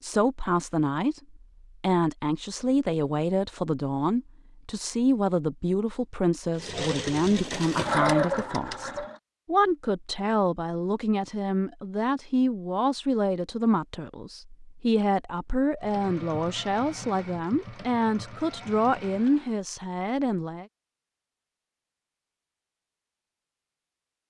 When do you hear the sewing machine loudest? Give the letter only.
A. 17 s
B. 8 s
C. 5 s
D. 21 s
B.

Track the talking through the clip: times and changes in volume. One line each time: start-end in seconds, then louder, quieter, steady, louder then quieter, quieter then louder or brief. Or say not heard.
0.0-20.6 steady.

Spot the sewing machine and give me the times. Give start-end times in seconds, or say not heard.
6.5-9.2, 15.8-19.6.